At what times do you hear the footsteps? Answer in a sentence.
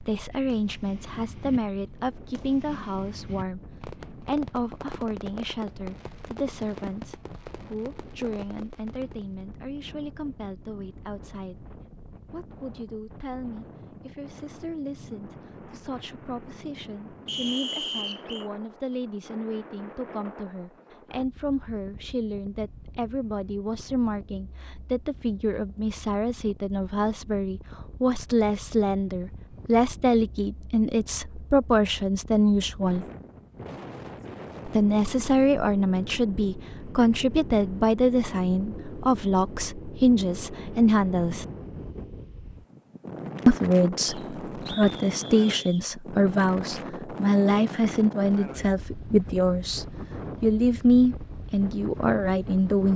You can't hear the footsteps here.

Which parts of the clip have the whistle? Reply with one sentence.
The whistle can be heard from 17.2 to 18.4 s and from 44.0 to 45.9 s.